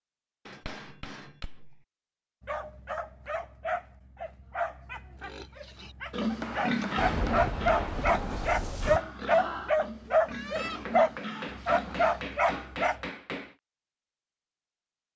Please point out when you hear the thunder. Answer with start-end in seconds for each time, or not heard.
7.0-9.0.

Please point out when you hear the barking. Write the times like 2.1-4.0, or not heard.
2.4-13.0.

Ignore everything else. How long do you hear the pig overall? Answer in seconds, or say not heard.
8 s.